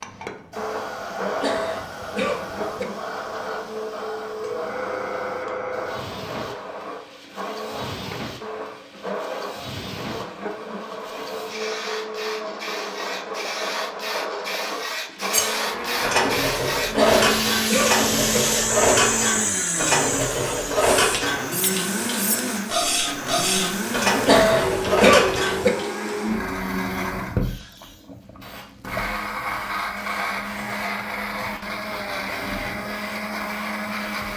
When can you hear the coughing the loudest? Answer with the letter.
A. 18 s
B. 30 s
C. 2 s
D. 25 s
D.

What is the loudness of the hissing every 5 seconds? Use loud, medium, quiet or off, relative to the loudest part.
medium, medium, medium, loud, medium, quiet, quiet.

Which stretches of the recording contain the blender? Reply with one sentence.
The blender can be heard from 0.0 to 34.3 s.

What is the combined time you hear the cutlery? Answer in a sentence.
You can hear the cutlery for 10 seconds altogether.